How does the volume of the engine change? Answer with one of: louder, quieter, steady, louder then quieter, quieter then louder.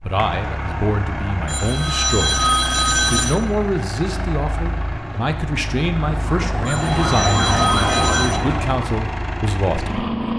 steady.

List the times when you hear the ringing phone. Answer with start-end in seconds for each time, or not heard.
1.4-3.4, 6.7-8.4.